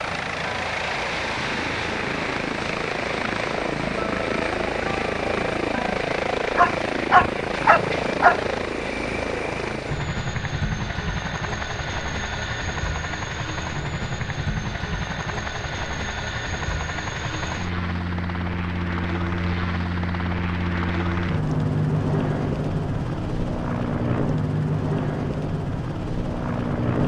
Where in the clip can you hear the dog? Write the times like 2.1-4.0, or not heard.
6.5-8.5.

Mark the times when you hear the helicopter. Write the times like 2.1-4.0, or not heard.
0.0-27.0.